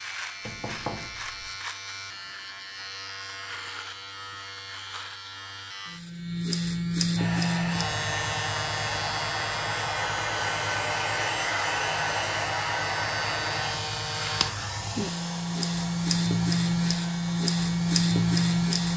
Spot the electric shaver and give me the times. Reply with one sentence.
The electric shaver can be heard from 0.0 to 18.9 s.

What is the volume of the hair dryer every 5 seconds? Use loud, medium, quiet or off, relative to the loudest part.
off, loud, loud, medium.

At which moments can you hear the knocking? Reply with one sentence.
You can hear the knocking from 0.5 to 1.6 s.